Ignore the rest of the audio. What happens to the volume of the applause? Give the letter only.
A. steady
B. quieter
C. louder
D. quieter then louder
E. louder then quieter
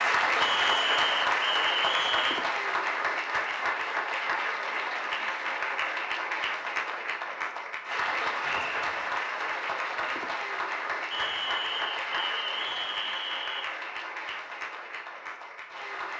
B.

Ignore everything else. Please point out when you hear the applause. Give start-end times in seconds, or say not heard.
0.0-16.1.